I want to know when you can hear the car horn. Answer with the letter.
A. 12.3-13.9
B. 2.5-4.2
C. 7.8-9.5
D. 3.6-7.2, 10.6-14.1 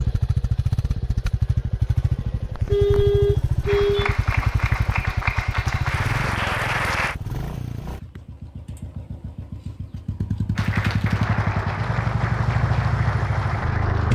B.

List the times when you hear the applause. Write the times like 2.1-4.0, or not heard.
3.6-7.2, 10.6-14.1.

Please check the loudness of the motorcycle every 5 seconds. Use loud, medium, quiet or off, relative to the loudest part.
loud, medium, loud.